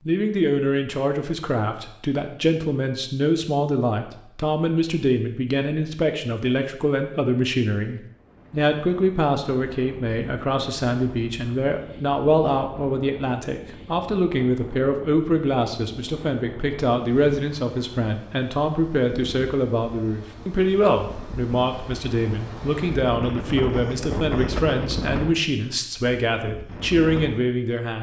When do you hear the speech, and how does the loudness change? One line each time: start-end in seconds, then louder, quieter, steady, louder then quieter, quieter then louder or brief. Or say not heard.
0.1-27.9 steady.